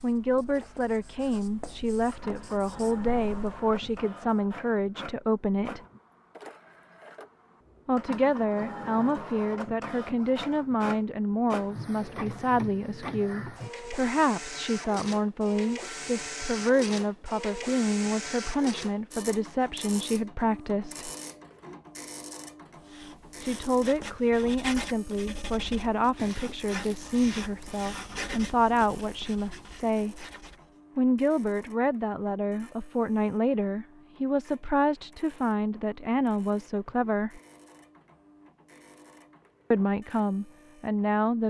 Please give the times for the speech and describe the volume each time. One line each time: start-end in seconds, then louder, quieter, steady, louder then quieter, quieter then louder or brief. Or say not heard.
0.0-5.8 steady
7.8-21.1 steady
23.4-30.2 steady
30.9-37.4 steady
39.7-41.4 brief.